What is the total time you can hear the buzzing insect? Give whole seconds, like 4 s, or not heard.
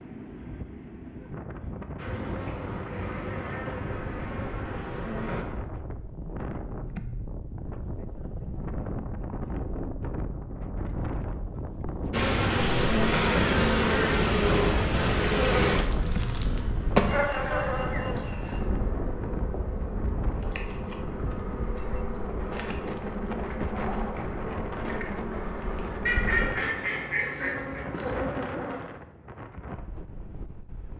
20 s.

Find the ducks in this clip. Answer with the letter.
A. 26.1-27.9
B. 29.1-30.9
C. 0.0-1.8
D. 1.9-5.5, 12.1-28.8
A.